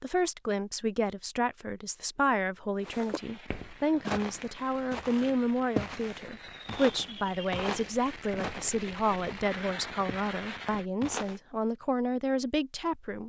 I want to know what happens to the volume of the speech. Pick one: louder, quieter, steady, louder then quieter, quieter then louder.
steady.